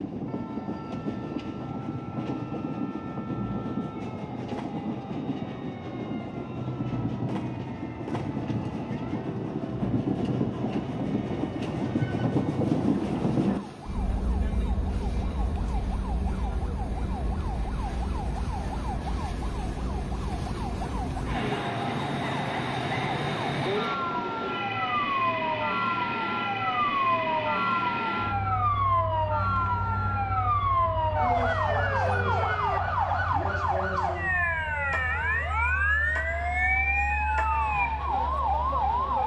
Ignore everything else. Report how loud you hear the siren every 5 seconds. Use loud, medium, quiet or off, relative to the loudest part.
quiet, quiet, quiet, medium, medium, loud, loud, loud.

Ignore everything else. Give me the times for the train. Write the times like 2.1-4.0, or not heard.
0.0-39.2.